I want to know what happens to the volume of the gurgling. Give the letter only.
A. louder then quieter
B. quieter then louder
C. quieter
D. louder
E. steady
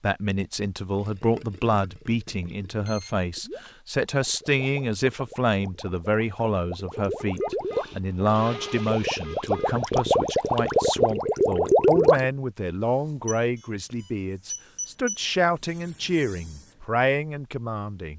D.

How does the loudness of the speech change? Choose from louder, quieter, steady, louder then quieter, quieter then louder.
steady.